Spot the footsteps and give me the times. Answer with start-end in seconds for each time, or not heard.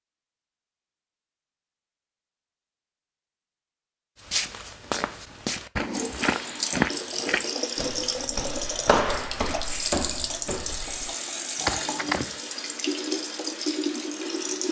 4.2-12.3.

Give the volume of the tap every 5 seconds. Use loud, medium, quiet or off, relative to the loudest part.
off, loud, loud.